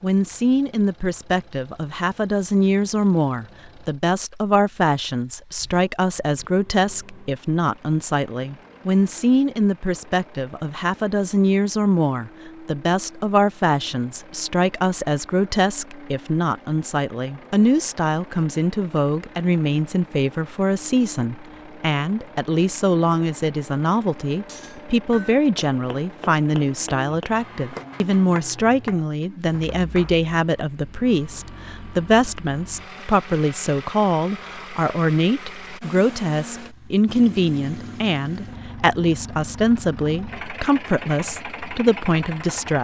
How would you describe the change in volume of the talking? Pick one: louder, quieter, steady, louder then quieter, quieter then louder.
steady.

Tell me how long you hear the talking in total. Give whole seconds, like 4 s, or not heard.
43 s.